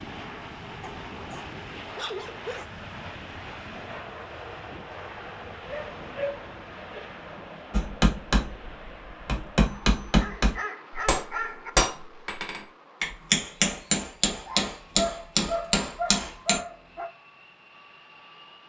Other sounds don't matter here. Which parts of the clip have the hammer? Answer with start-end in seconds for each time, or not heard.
7.7-16.6.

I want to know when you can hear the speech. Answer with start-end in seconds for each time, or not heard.
not heard.